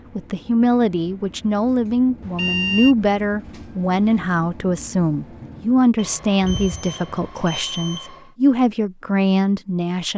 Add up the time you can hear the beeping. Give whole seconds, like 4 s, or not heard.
3 s.